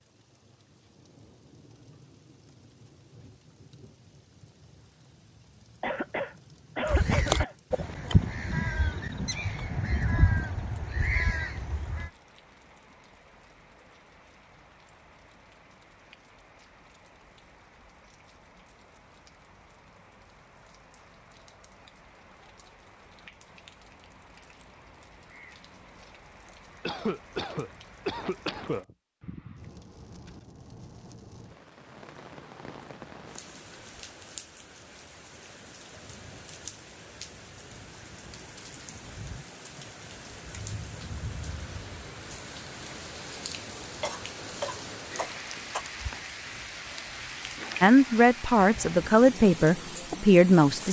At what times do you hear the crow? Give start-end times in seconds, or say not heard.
6.8-12.1.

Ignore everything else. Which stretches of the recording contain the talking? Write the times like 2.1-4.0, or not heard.
47.8-50.8.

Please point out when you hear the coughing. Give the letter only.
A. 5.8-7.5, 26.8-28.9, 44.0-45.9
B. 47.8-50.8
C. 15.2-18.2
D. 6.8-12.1
A.